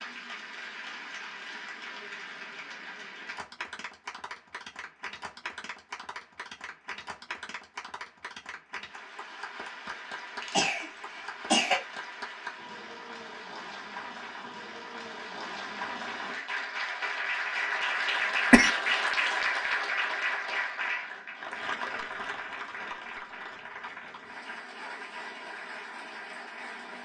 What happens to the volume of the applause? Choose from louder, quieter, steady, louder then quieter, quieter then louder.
louder then quieter.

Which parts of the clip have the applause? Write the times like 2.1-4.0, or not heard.
0.0-27.0.